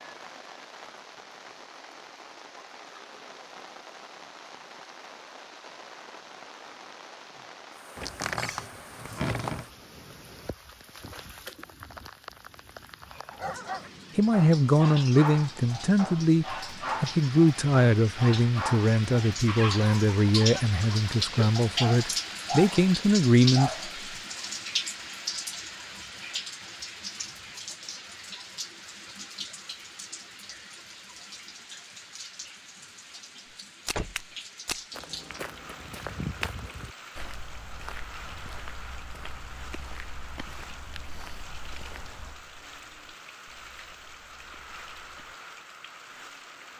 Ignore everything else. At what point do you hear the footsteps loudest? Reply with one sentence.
The loudest moment of the footsteps is at 36 seconds.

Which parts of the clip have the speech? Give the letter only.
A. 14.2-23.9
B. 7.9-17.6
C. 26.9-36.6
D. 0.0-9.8
A.